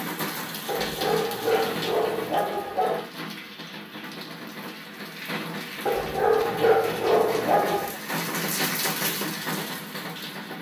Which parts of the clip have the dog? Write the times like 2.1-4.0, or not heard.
0.7-3.1, 5.8-8.0.